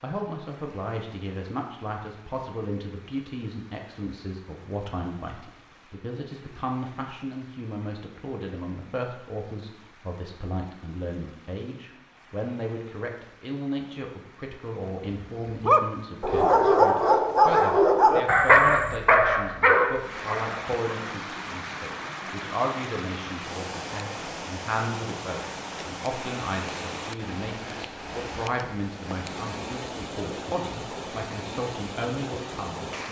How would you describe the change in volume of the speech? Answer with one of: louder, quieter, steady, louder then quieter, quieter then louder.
steady.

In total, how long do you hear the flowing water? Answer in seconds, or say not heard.
33 s.